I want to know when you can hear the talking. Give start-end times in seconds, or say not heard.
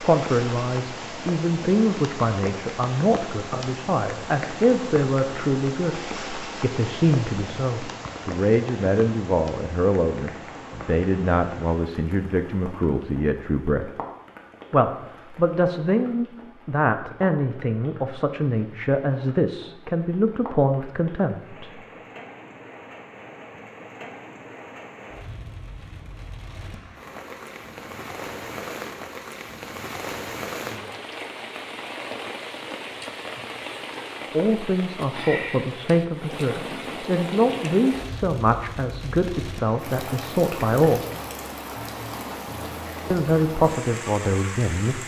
0.0-13.9, 14.7-21.7, 34.3-41.0, 43.1-45.0.